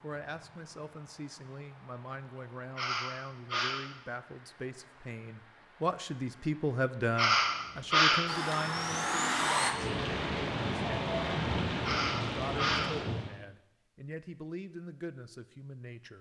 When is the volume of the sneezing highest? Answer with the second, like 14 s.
8 s.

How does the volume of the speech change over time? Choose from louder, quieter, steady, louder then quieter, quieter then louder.
louder then quieter.